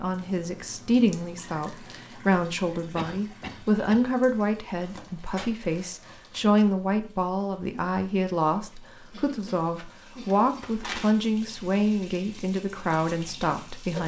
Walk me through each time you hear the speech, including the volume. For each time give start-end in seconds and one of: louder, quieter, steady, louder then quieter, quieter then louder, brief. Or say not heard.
0.0-14.0 steady.